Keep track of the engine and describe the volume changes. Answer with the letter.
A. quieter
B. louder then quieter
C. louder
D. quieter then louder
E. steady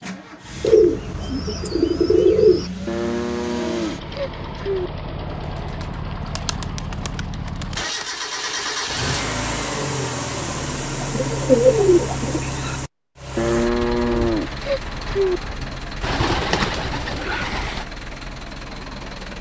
B.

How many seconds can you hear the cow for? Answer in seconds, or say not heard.
4 s.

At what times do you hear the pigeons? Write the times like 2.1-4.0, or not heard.
0.6-2.7, 5.8-8.1, 11.0-12.8, 16.0-17.9.